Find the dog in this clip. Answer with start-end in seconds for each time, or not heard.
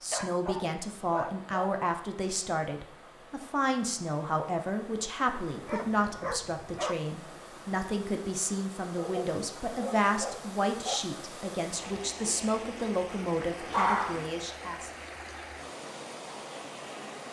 0.1-1.8, 5.5-7.0, 8.9-11.0, 13.7-14.3.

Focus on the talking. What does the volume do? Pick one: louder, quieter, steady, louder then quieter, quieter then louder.
steady.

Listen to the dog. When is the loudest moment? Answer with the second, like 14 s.
14 s.